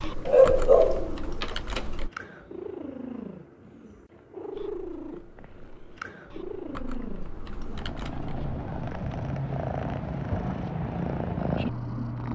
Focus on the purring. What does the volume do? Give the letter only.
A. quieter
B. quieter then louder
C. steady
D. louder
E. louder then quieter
D.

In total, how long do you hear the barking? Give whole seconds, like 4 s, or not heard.
2 s.